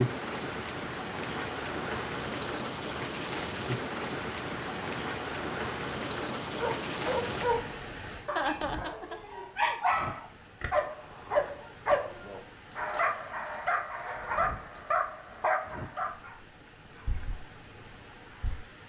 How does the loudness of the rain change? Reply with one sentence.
The loudness of the rain goes down.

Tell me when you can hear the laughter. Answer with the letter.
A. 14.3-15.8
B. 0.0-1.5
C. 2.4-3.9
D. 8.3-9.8
D.